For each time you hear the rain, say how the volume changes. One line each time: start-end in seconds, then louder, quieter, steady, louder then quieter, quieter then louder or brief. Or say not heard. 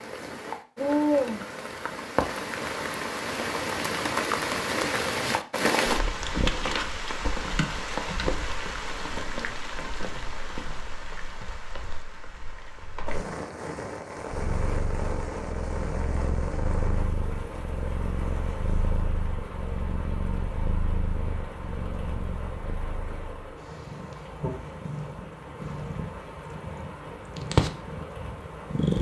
0.0-28.9 quieter.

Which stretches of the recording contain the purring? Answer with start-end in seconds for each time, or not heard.
14.3-28.9.